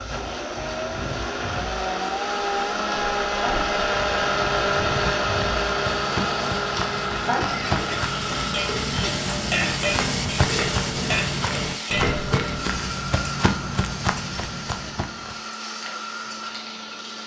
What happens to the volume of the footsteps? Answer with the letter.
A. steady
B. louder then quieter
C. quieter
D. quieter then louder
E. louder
E.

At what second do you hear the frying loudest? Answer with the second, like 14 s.
10 s.